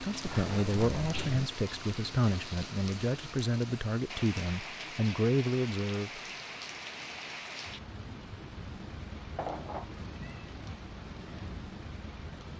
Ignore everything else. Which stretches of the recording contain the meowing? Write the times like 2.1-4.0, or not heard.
0.2-1.6, 9.3-10.5.